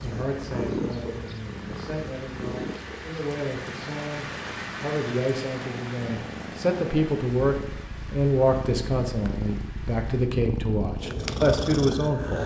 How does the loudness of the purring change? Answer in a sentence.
The loudness of the purring goes down, then up.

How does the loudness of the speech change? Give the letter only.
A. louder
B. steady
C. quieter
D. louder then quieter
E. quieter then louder
A.